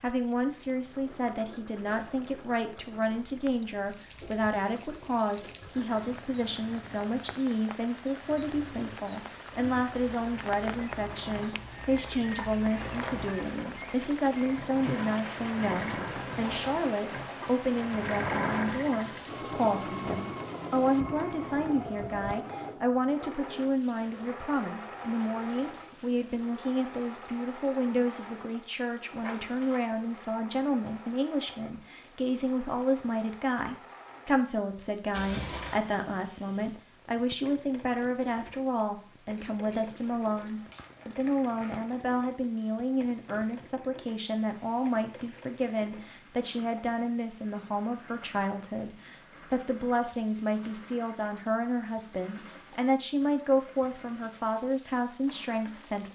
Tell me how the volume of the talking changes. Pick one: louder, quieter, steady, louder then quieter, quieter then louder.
steady.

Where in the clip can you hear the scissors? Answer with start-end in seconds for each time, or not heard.
16.1-16.9, 35.1-35.8, 39.4-40.9.